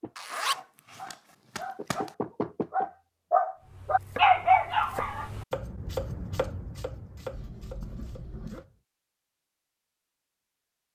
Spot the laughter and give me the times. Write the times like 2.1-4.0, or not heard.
not heard.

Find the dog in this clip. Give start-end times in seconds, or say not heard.
0.0-5.3.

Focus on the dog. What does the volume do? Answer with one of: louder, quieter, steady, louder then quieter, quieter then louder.
louder.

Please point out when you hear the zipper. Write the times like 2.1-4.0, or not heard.
0.1-2.1, 7.3-8.7.